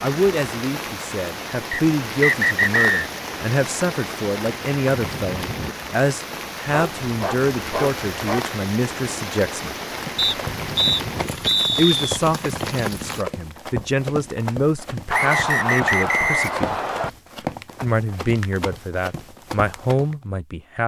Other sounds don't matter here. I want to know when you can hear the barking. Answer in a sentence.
The barking can be heard from 6.7 to 8.5 s.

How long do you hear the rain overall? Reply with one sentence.
The rain can be heard for 13 seconds in total.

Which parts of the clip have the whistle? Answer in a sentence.
The whistle can be heard from 1.7 to 3.1 s, from 10.2 to 12.2 s and from 15.1 to 17.1 s.